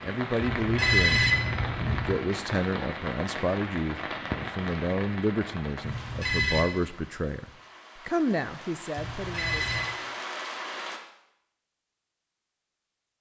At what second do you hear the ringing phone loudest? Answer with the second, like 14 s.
1 s.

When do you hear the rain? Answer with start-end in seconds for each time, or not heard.
0.0-11.0.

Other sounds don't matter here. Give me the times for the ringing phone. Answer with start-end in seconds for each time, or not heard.
0.4-2.2, 5.8-6.7, 8.9-9.9.